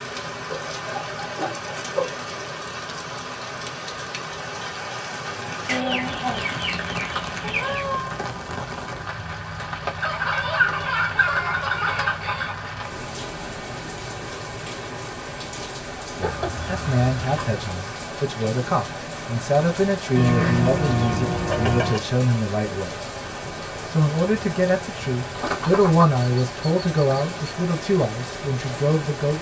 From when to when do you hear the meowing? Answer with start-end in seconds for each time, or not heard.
7.4-8.2.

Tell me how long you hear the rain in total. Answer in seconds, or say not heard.
29 s.